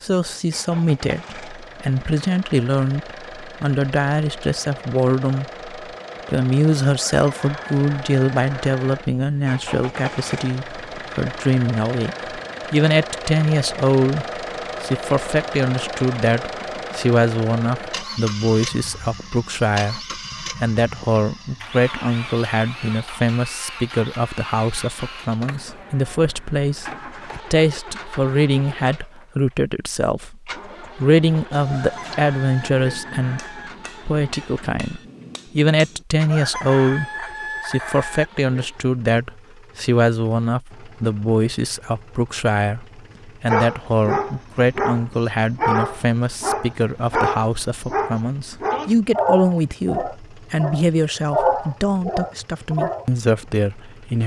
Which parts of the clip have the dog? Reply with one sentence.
The dog can be heard from 43.5 to 53.0 s.